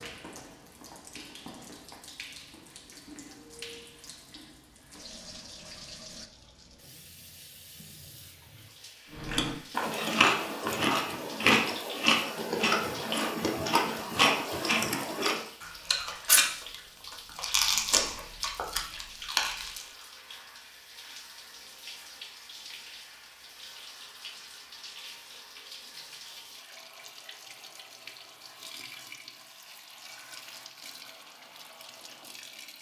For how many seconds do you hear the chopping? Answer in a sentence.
The chopping can't be heard in this clip.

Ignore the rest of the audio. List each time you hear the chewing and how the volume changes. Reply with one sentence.
The chewing can be heard from 9.2 to 19.9 s, at a steady volume.